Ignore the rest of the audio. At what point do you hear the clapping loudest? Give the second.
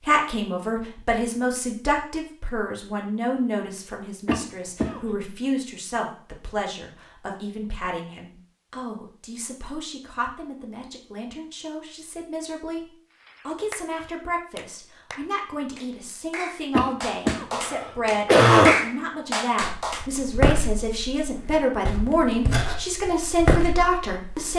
19 s.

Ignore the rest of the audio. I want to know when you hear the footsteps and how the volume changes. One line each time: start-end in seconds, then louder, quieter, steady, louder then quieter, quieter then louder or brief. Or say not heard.
19.6-24.5 quieter then louder.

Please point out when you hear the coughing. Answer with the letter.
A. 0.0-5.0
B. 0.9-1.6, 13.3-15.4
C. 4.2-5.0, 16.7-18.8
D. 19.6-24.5
C.